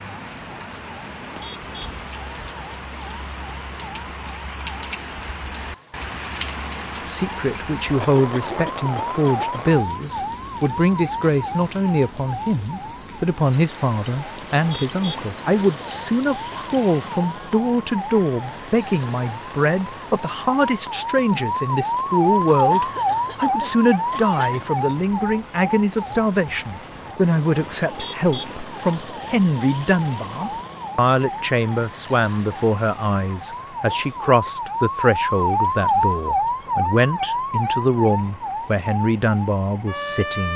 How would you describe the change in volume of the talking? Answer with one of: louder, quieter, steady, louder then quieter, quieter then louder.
steady.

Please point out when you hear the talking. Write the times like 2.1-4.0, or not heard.
7.0-40.5.